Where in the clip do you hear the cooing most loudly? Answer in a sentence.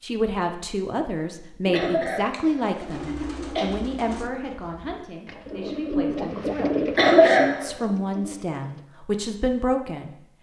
The volume of the cooing peaks at 7 seconds.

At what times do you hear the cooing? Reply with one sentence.
You can hear the cooing from 1.7 to 8.8 s.